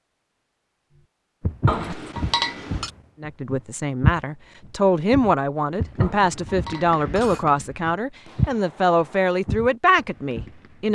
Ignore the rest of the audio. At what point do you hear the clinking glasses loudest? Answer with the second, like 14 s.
2 s.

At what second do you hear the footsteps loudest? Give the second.
4 s.